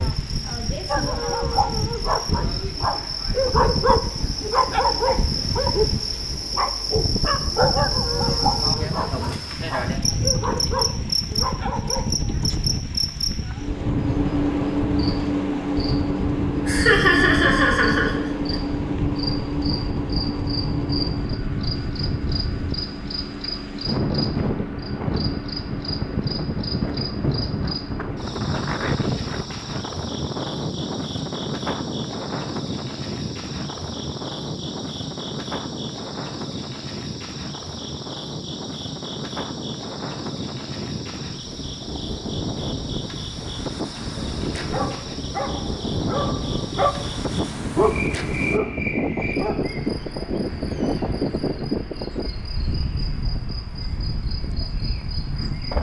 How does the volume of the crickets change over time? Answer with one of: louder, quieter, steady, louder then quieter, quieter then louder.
quieter.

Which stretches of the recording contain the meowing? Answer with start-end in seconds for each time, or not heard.
not heard.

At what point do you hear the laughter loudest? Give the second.
17 s.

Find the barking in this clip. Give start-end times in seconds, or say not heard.
0.8-12.2, 44.6-51.4.